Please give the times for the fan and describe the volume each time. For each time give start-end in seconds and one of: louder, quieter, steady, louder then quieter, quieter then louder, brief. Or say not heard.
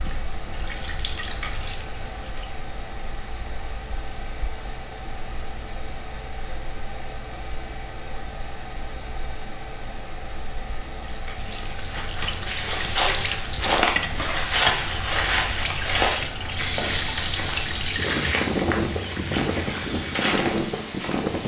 0.0-21.4 louder.